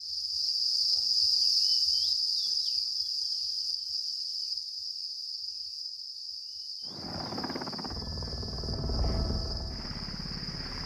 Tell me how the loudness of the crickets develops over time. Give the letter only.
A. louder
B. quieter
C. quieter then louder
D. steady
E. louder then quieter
B.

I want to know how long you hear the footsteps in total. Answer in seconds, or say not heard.
not heard.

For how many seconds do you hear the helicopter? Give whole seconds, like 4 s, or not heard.
4 s.